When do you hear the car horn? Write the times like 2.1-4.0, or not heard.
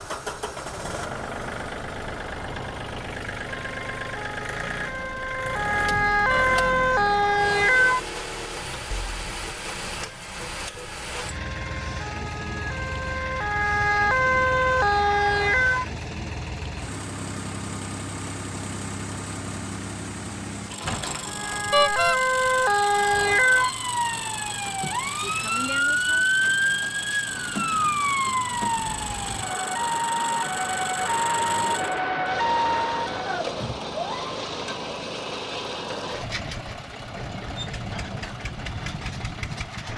6.2-6.8, 21.7-22.2.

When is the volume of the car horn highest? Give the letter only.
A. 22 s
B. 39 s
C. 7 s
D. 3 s
A.